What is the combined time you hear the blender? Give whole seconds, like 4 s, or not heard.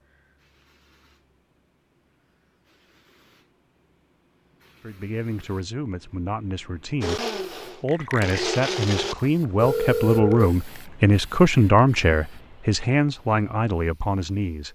2 s.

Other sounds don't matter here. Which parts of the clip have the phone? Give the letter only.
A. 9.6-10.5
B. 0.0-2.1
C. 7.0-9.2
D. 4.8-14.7
A.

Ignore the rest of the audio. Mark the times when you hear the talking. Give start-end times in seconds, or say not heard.
4.8-14.7.